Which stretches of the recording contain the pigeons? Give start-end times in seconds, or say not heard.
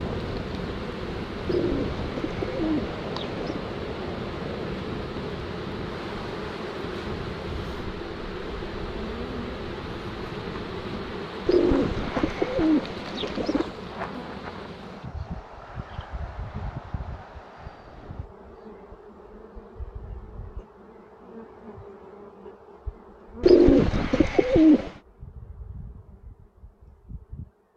1.4-3.6, 11.4-13.7, 23.4-24.9.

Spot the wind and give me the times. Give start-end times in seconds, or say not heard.
0.0-18.3.